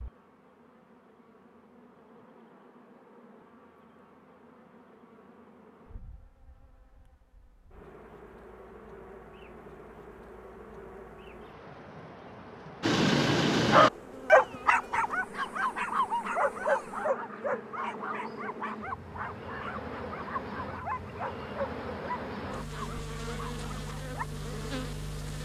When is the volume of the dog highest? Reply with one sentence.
The volume of the dog peaks at 14 seconds.